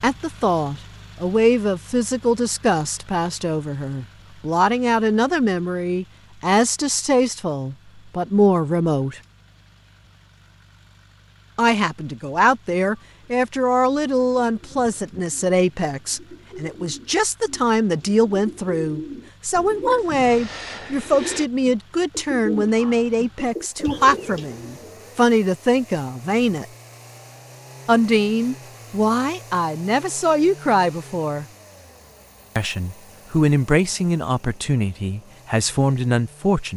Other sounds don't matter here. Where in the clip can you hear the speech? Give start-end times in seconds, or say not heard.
0.0-9.2, 11.6-26.6, 27.9-31.4, 32.5-36.7.